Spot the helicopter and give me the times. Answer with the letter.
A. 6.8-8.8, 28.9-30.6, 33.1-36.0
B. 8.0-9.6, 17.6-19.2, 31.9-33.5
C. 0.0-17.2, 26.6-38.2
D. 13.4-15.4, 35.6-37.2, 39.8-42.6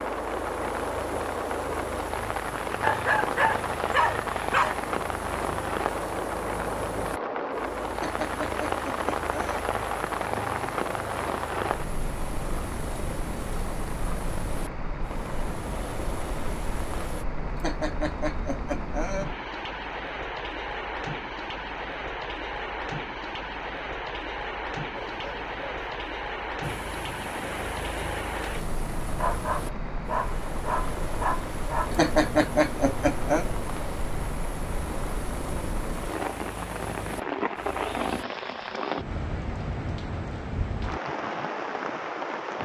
C.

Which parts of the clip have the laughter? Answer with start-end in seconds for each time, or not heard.
8.0-9.6, 17.6-19.2, 31.9-33.5.